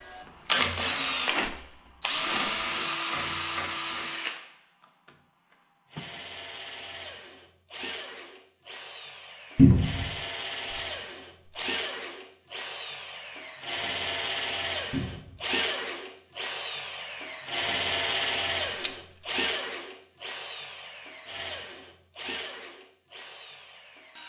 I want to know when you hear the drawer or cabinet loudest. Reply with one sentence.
The volume of the drawer or cabinet peaks at 10 seconds.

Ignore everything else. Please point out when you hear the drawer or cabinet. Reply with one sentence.
You can hear the drawer or cabinet from 9.6 to 10.1 s and from 14.9 to 15.4 s.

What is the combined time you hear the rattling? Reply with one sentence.
You can hear the rattling for 3 seconds altogether.